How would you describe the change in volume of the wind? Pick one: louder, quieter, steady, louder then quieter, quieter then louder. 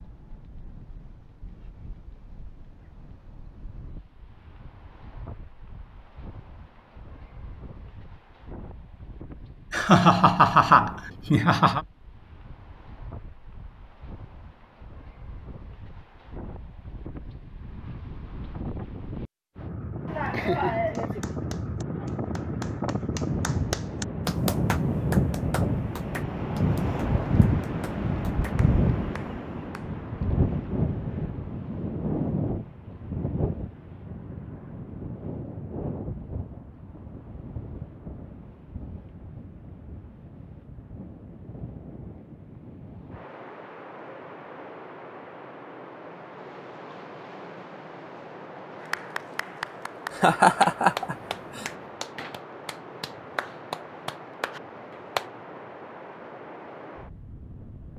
louder then quieter.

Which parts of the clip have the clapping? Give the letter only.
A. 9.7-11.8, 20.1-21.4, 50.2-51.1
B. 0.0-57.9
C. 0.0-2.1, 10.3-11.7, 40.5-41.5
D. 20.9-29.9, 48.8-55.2
D.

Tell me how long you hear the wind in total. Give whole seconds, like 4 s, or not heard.
58 s.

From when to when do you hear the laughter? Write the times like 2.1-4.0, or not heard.
9.7-11.8, 20.1-21.4, 50.2-51.1.